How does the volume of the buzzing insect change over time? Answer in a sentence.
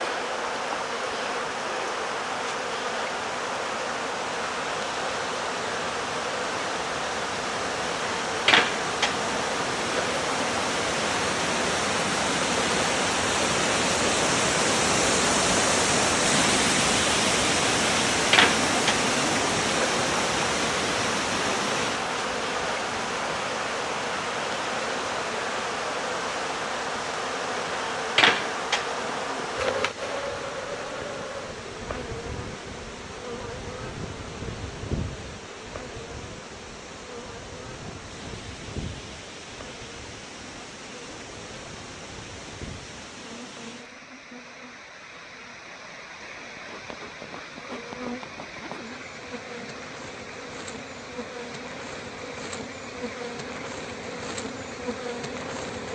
The loudness of the buzzing insect goes down.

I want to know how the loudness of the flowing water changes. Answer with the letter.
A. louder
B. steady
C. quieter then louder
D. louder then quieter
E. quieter
D.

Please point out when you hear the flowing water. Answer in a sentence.
You can hear the flowing water from 0.0 to 55.9 s.